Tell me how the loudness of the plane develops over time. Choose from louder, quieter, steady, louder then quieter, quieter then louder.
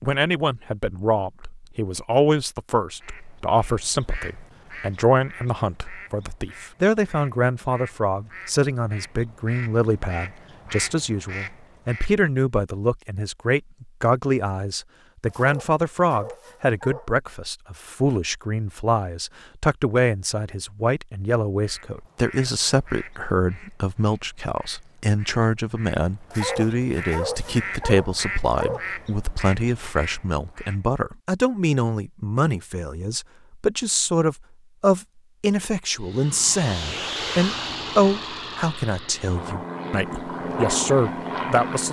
quieter then louder.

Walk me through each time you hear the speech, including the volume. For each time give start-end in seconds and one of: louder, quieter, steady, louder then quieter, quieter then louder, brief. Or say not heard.
0.0-41.8 steady.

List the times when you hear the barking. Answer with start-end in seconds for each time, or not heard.
15.2-17.1, 26.3-28.9.